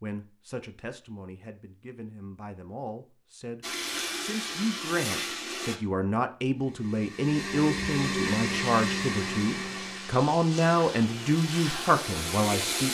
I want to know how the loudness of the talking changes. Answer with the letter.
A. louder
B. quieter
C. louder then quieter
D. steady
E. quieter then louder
A.